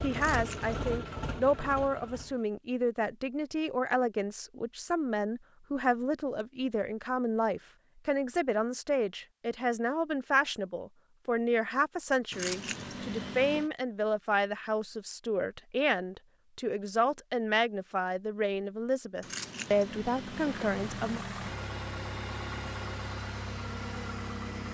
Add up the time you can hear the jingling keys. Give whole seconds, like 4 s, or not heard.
4 s.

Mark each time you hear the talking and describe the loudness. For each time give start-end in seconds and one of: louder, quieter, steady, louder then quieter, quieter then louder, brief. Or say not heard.
0.0-21.2 steady.